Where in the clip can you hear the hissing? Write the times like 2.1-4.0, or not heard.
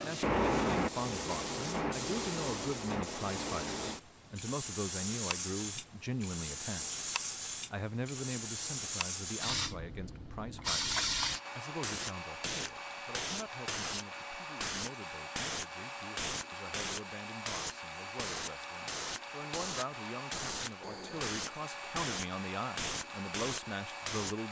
0.0-24.4.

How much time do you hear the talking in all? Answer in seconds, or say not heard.
24 s.